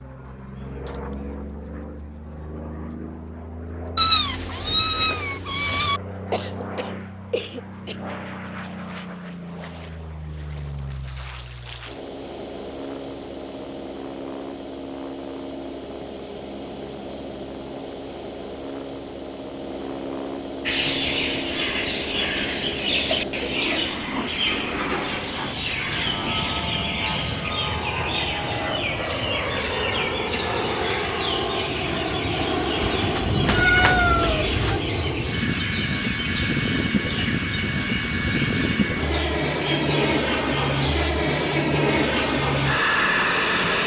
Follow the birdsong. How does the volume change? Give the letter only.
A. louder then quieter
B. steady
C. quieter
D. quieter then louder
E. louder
C.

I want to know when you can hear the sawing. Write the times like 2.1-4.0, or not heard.
not heard.